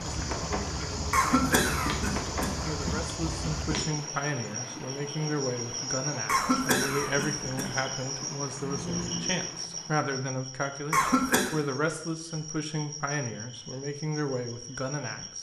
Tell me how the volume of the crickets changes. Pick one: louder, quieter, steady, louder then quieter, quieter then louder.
quieter.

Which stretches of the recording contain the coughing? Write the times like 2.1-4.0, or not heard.
1.1-3.0, 6.2-7.8, 10.9-11.5.